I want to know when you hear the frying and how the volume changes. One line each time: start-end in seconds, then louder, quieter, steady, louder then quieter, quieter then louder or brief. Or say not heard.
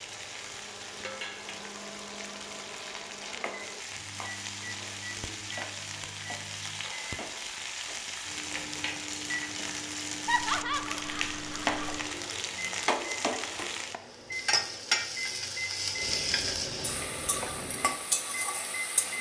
0.0-19.1 louder.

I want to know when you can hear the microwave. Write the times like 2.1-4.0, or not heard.
0.0-19.1.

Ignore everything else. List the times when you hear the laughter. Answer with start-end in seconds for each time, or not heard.
10.2-12.0.